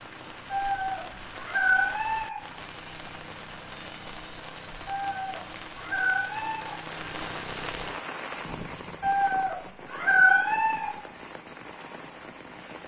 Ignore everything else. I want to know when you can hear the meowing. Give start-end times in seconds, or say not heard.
0.5-2.4, 4.8-6.8, 9.0-10.9.